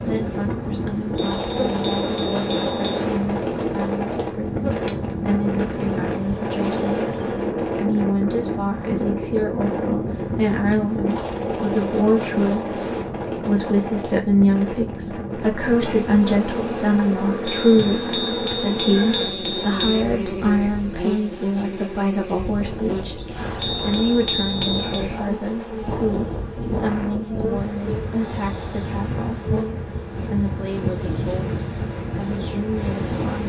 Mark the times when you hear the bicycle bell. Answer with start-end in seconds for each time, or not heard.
1.1-3.0, 17.4-20.1, 23.6-25.1.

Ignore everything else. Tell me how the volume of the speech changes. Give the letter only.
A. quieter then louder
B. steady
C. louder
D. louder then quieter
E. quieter
D.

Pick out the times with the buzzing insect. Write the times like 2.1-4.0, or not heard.
0.0-7.5, 15.6-33.4.